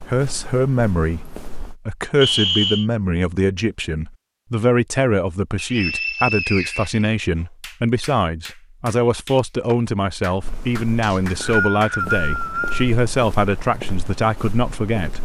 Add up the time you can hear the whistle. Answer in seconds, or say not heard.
4 s.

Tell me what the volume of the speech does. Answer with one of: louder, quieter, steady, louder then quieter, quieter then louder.
steady.